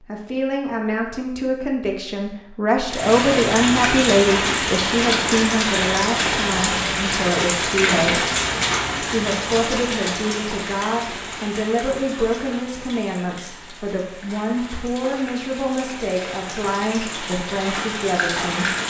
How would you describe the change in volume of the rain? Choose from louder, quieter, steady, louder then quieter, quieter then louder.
quieter then louder.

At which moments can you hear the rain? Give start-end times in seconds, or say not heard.
2.9-18.8.